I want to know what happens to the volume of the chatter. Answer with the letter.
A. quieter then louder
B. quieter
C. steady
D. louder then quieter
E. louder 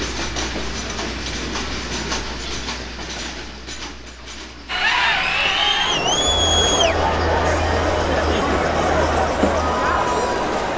C.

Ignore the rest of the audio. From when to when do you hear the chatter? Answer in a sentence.
You can hear the chatter from 4.7 to 10.7 s.